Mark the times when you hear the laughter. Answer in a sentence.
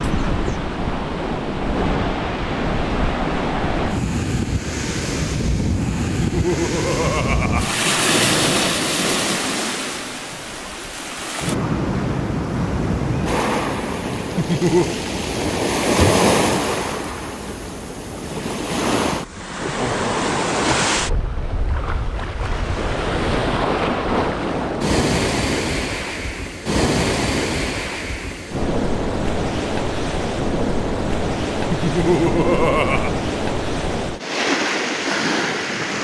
The laughter can be heard from 6.0 to 7.8 s, from 14.3 to 14.9 s and from 31.7 to 33.1 s.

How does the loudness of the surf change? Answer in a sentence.
The volume of the surf stays about the same.